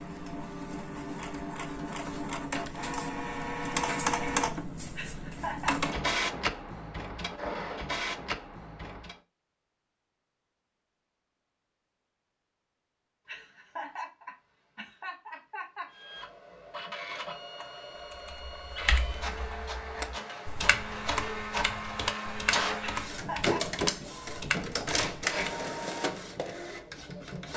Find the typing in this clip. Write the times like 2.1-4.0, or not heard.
18.2-25.6.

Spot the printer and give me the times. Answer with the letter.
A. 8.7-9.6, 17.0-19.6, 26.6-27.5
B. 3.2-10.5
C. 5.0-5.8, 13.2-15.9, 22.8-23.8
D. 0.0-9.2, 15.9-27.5
D.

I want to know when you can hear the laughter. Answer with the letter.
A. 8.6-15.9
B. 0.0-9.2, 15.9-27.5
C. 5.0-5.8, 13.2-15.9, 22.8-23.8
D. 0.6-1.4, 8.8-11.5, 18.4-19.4
C.